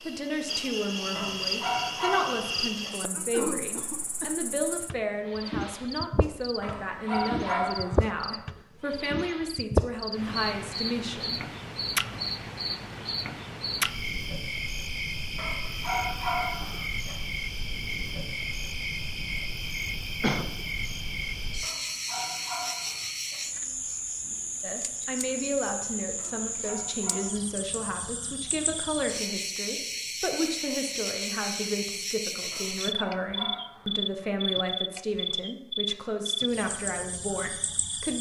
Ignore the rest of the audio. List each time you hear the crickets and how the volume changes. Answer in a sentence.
You can hear the crickets from 0.0 to 38.1 s, at a steady volume.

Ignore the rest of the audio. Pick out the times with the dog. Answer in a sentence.
You can hear the dog from 1.1 to 2.9 s, from 6.6 to 8.3 s, from 15.3 to 17.1 s, from 21.6 to 23.4 s, from 26.1 to 27.7 s and from 32.5 to 34.2 s.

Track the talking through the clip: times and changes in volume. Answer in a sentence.
The talking can be heard from 0.0 to 11.4 s, at a steady volume; and from 24.6 to 38.1 s, at a steady volume.